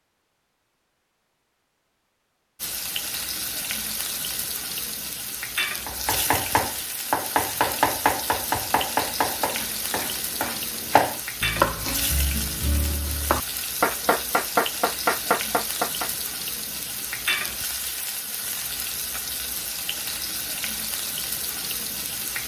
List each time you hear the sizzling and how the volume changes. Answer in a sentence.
The sizzling can be heard from 2.6 to 22.4 s, at a steady volume.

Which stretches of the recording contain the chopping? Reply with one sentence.
You can hear the chopping from 5.8 to 16.1 s.